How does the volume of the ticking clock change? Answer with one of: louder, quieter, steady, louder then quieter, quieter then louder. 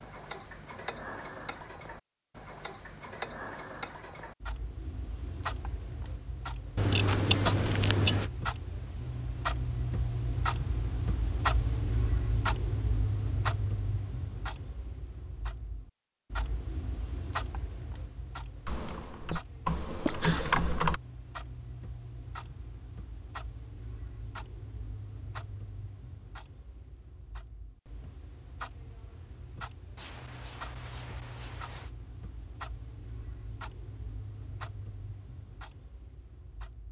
louder then quieter.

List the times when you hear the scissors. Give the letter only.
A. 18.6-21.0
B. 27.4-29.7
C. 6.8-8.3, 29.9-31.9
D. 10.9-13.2
C.